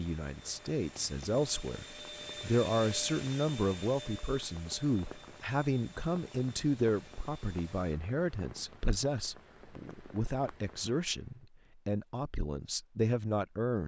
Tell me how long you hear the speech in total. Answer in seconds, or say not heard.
14 s.